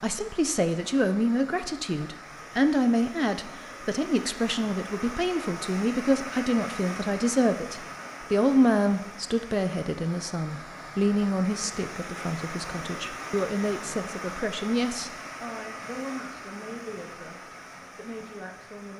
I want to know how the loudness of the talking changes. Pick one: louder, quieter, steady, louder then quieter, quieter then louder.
quieter.